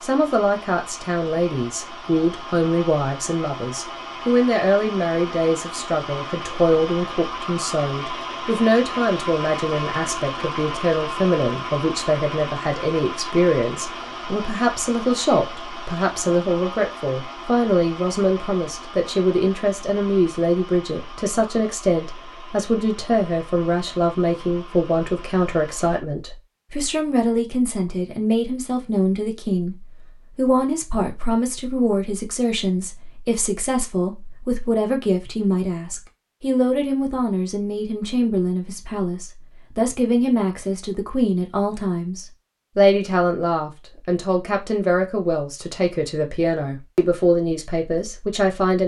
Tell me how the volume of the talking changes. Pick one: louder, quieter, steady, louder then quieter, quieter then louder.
steady.